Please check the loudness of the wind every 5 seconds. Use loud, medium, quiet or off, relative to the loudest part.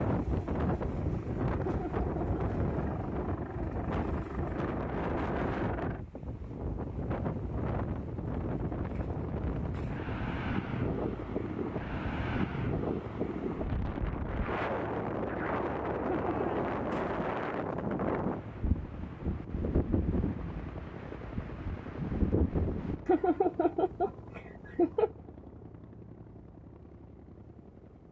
loud, loud, loud, loud, loud, off.